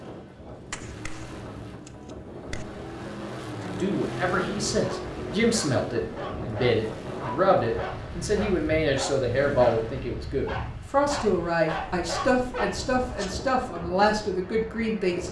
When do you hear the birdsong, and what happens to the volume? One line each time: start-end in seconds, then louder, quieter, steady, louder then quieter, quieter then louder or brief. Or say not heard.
not heard.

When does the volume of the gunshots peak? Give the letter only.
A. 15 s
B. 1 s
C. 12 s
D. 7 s
B.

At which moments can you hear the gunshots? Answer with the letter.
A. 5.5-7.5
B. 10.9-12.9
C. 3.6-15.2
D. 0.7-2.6
D.